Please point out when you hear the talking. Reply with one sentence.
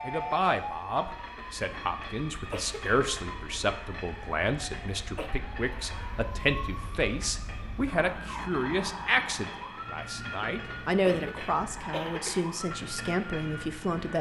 The talking can be heard from 0.1 to 14.1 s.